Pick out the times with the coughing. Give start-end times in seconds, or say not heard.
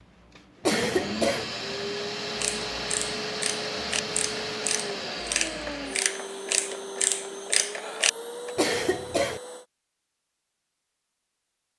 0.7-1.4, 8.6-9.4.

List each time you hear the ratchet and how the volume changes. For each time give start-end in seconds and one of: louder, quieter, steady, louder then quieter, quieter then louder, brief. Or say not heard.
2.4-8.5 louder.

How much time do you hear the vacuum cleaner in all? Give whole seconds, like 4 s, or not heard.
10 s.